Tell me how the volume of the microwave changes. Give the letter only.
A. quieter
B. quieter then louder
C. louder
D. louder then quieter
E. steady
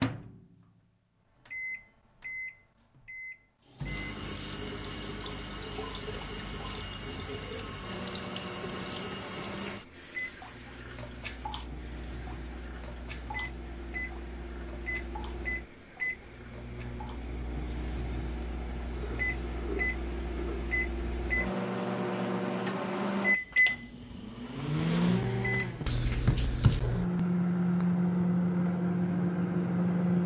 C.